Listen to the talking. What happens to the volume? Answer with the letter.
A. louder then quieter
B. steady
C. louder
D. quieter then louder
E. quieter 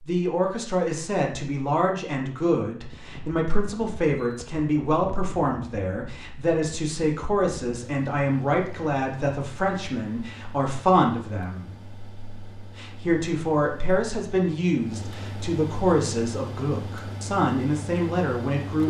B.